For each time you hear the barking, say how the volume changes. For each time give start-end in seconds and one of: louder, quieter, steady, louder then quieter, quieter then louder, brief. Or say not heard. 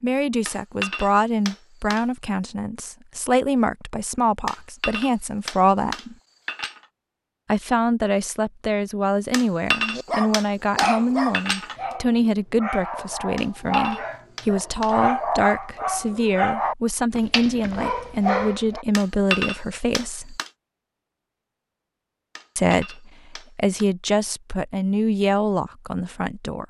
9.9-18.9 quieter then louder.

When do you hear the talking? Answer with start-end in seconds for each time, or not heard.
0.0-6.2, 7.5-20.4, 22.6-26.6.